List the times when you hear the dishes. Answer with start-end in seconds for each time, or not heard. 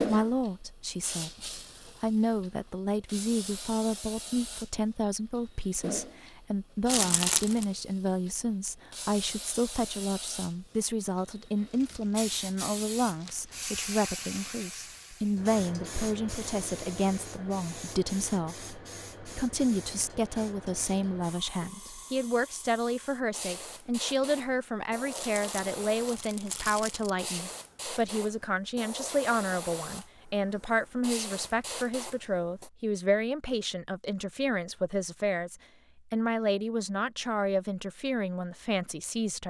not heard.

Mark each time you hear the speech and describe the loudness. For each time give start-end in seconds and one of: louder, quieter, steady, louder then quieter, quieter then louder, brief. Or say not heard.
0.0-39.4 steady.